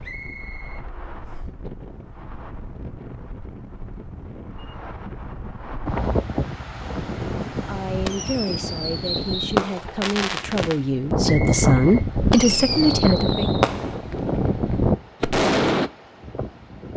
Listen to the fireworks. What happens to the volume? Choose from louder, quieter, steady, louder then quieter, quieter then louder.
louder.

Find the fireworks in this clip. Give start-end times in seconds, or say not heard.
7.0-15.9.